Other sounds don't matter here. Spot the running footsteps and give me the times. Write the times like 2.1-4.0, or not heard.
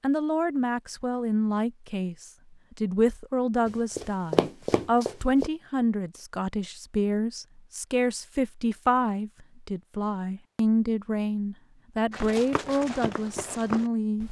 3.6-5.5, 12.1-14.2.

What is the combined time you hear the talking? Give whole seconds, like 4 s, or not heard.
14 s.